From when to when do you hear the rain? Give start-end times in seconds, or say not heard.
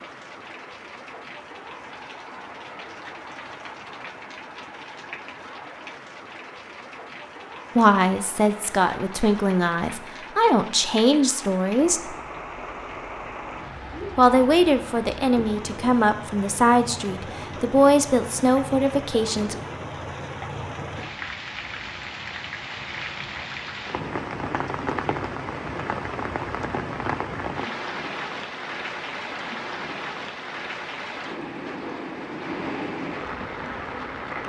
0.0-34.4.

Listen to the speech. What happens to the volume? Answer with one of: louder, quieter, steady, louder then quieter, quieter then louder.
steady.